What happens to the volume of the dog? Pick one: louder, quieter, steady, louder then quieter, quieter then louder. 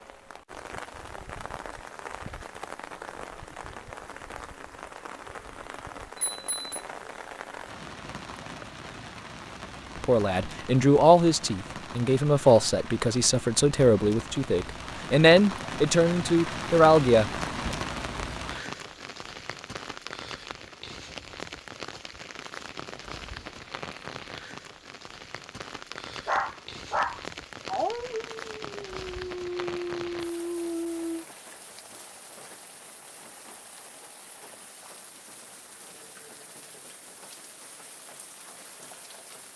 quieter then louder.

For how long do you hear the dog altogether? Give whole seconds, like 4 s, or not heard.
5 s.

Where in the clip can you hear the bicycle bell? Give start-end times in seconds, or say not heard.
6.2-6.8.